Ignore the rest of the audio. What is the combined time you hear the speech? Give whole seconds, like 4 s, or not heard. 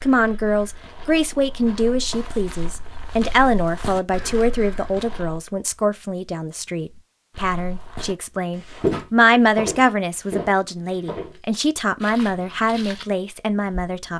14 s.